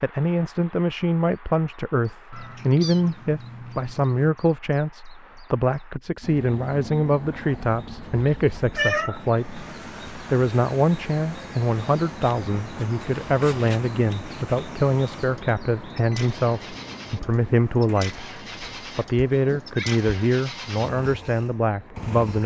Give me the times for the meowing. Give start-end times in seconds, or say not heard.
2.3-4.3, 8.2-9.2, 18.6-20.1.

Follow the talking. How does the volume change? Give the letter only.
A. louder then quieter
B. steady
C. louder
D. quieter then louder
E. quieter
B.